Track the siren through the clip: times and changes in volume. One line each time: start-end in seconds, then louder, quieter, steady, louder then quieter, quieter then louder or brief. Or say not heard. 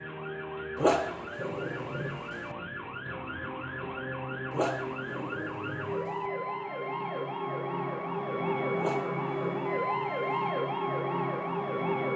0.0-12.1 louder.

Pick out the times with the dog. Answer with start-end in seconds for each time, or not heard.
0.8-2.5, 4.5-6.3, 8.8-10.6.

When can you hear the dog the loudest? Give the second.
1 s.